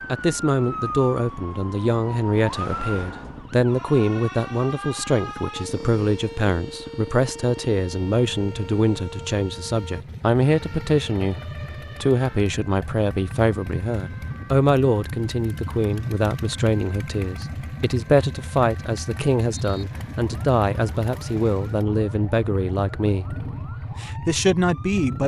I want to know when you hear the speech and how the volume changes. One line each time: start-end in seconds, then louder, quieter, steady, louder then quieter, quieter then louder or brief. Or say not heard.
0.1-25.2 steady.